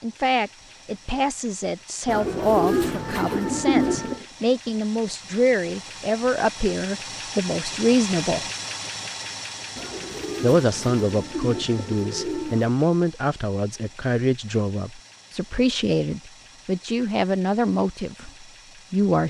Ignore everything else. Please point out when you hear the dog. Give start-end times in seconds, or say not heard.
not heard.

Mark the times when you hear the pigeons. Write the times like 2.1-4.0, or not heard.
2.0-4.2, 9.8-12.7.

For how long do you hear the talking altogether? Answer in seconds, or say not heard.
17 s.